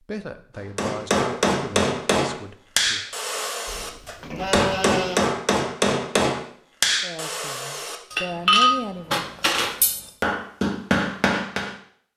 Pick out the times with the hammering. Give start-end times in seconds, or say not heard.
0.8-11.8.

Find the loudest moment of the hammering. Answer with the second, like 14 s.
9 s.